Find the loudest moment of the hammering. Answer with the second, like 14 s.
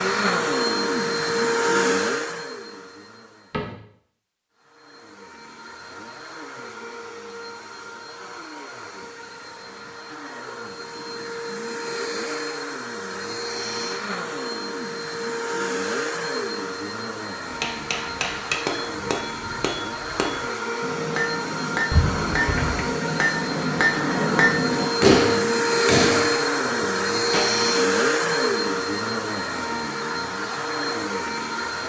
25 s.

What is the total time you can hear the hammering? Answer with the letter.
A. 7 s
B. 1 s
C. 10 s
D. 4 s
C.